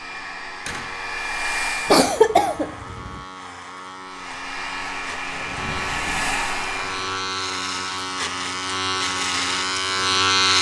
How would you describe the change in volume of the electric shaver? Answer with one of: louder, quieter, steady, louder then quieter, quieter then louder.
louder.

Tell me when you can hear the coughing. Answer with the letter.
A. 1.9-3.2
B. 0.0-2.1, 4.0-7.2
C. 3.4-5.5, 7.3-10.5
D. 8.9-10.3
A.